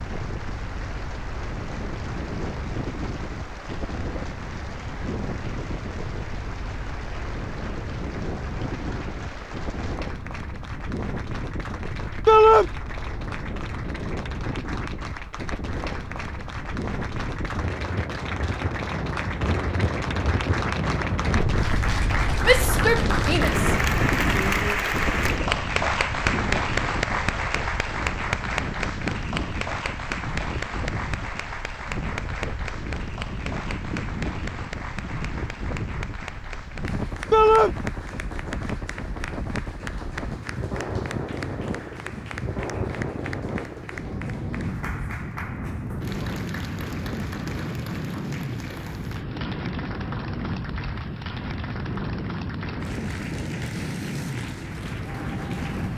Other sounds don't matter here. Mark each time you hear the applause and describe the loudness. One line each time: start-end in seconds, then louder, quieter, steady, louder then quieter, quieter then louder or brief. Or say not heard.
0.0-55.9 louder then quieter.